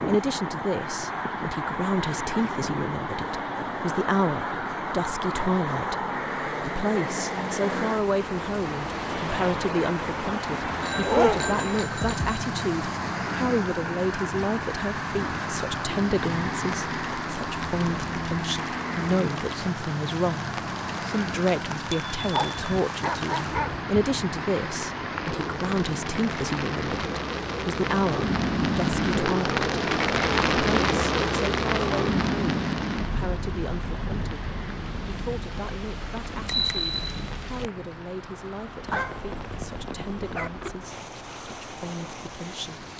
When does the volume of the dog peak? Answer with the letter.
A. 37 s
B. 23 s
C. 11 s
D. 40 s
C.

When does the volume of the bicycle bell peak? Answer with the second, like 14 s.
37 s.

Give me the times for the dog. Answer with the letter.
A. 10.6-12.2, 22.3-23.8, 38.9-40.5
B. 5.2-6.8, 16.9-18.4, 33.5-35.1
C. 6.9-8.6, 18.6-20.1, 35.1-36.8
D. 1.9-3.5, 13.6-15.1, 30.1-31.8
A.